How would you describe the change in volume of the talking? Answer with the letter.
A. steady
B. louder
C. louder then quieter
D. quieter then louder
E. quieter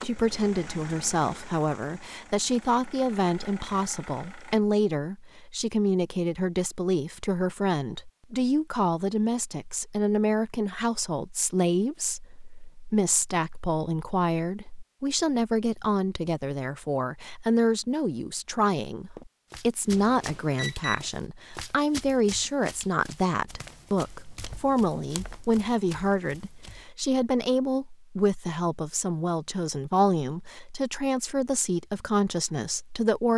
A.